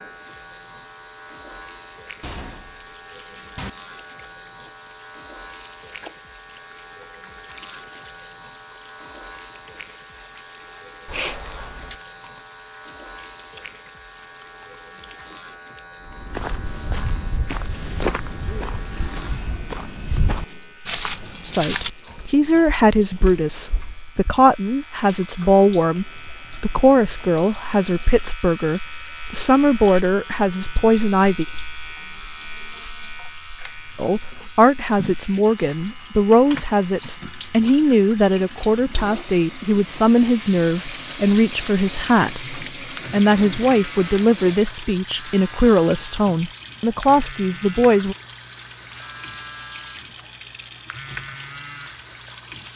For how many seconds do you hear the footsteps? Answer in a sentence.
You can hear the footsteps for 8 seconds altogether.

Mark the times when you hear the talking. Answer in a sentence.
You can hear the talking from 21.4 to 31.4 s and from 34.0 to 48.1 s.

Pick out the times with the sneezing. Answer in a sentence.
The sneezing can be heard from 11.1 to 11.9 s and from 35.4 to 36.0 s.